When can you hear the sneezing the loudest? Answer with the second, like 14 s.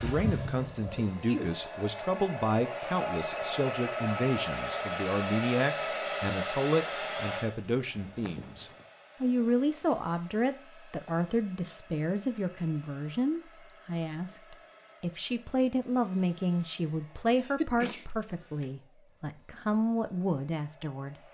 18 s.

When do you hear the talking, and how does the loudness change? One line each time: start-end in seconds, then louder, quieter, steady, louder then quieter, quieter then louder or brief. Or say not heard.
0.0-21.3 steady.